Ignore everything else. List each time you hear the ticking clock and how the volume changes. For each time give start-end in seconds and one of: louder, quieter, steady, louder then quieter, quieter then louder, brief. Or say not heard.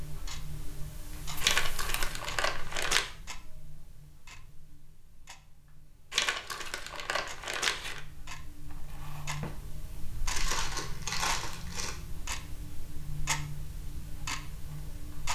0.0-15.2 quieter then louder.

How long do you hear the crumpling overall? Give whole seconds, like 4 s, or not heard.
5 s.